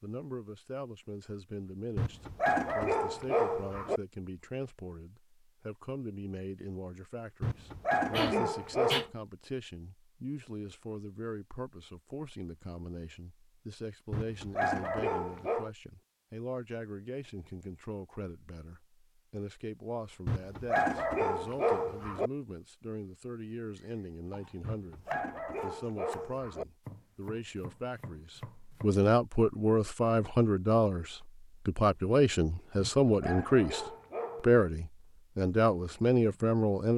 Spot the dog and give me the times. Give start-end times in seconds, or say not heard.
1.9-4.0, 7.4-9.1, 14.1-15.7, 20.2-22.3, 24.6-26.6, 32.8-34.6.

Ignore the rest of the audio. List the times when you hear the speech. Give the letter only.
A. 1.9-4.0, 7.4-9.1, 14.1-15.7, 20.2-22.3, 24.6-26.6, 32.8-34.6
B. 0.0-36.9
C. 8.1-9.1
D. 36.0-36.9
B.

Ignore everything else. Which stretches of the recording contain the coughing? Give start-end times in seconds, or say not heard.
8.1-9.1.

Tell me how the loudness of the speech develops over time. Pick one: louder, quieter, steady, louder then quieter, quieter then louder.
louder.